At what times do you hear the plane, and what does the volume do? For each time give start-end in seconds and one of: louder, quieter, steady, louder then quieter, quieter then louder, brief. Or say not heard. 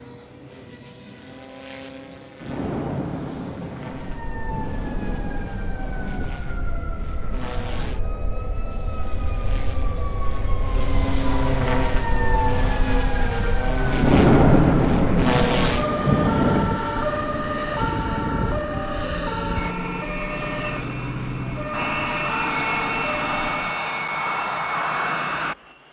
0.0-25.8 louder.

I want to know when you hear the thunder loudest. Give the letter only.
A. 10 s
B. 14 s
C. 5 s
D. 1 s
B.